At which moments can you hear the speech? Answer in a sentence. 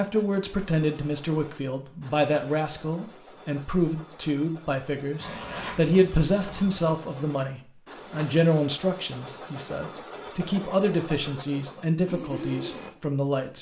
You can hear the speech from 0.0 to 13.5 s.